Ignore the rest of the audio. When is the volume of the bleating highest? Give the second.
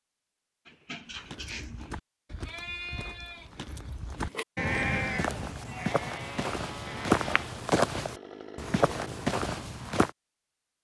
5 s.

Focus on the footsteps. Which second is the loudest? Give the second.
7 s.